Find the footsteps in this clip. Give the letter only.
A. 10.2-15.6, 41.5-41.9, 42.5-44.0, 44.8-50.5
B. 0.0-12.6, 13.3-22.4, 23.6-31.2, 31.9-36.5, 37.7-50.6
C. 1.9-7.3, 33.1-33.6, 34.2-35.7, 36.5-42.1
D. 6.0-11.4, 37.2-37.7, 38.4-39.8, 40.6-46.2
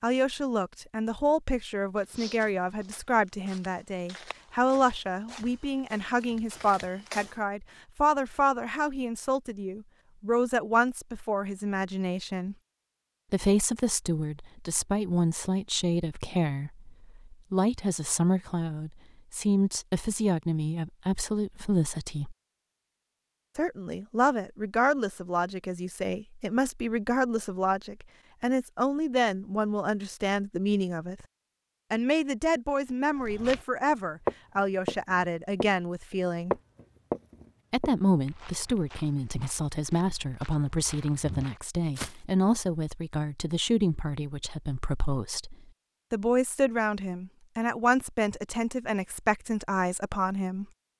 C.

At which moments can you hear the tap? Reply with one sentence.
You can't hear the tap here.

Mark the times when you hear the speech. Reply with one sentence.
The speech can be heard from 0.0 to 12.6 s, from 13.3 to 22.4 s, from 23.6 to 31.2 s, from 31.9 to 36.5 s and from 37.7 to 50.6 s.